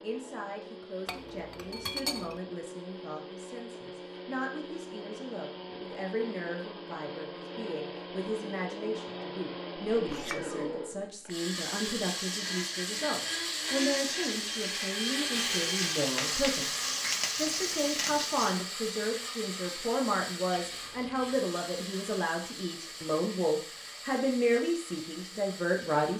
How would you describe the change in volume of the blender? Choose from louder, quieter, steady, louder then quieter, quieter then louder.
louder then quieter.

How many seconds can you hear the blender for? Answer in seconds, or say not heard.
26 s.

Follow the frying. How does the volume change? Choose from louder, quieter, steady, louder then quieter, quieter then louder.
louder.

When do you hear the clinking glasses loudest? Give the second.
2 s.